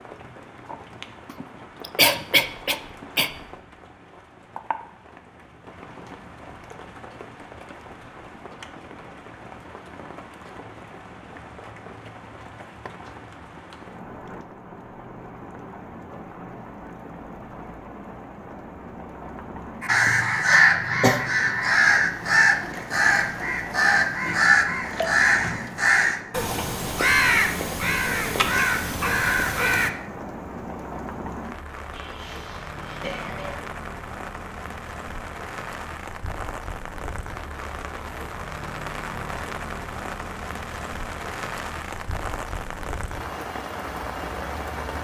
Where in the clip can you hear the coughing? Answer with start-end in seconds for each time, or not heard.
1.2-3.3, 20.5-21.2, 31.9-33.6.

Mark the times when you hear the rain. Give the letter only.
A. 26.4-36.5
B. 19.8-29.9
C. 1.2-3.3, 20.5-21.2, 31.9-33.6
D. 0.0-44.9
D.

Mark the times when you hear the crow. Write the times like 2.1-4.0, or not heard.
19.8-29.9.